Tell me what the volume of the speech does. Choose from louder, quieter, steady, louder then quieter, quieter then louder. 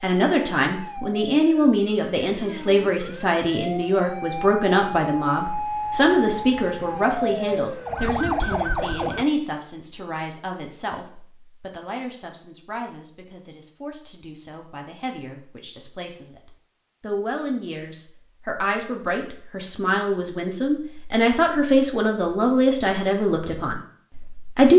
quieter then louder.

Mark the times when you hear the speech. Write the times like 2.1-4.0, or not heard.
0.0-24.7.